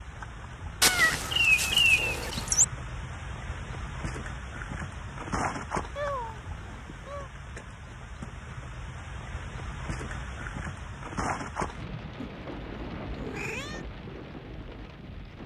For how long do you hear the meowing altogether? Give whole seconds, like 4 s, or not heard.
5 s.